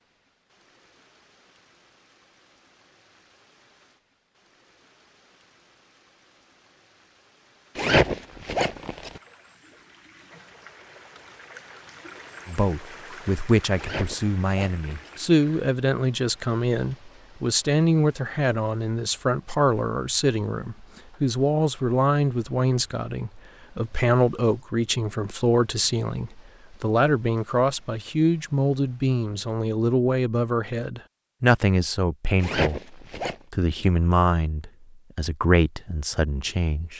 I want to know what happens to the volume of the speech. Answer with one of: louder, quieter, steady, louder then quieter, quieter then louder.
steady.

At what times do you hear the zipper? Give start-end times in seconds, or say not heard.
7.8-9.2, 13.8-15.2, 32.4-33.4.